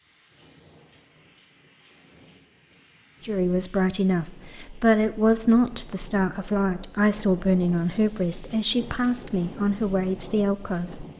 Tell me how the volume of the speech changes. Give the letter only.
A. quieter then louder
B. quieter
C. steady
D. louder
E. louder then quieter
C.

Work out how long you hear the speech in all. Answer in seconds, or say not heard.
8 s.